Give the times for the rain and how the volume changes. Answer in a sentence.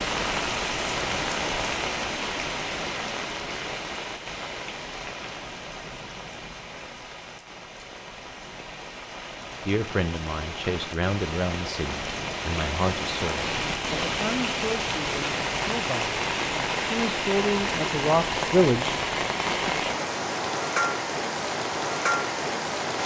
You can hear the rain from 0.0 to 23.0 s, getting quieter then louder.